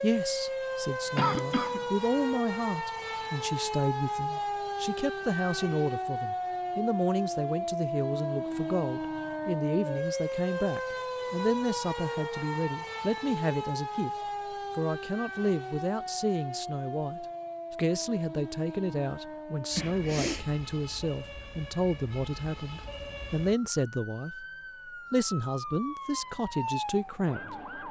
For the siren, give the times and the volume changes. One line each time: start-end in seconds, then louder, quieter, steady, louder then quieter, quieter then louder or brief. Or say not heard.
0.0-27.8 quieter.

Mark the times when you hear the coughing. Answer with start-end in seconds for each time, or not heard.
1.1-1.9, 19.8-20.4.